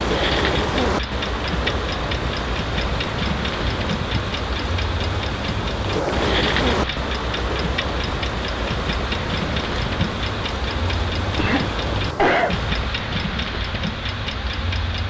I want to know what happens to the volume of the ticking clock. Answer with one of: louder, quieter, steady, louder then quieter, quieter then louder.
steady.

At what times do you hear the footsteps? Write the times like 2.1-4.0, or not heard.
not heard.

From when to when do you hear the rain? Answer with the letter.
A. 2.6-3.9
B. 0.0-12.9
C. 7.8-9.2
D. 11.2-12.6
B.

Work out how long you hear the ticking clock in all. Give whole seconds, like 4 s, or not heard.
15 s.